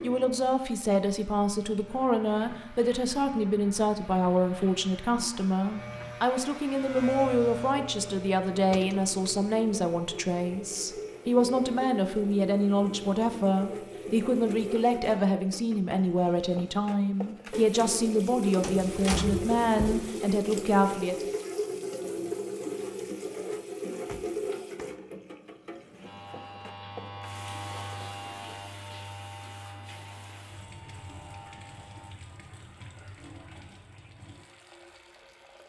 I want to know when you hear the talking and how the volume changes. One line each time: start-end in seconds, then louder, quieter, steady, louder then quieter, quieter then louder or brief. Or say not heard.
0.0-21.3 steady.